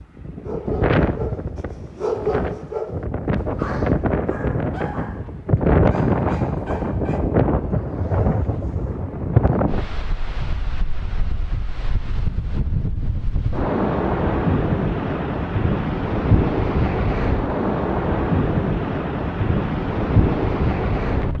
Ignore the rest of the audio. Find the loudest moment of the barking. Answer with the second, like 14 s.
2 s.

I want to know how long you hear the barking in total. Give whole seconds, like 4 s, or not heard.
7 s.